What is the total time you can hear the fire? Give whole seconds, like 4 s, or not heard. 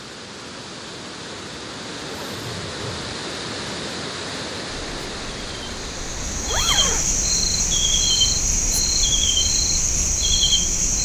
not heard.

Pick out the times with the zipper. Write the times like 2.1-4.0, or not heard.
1.9-3.1, 6.3-7.2.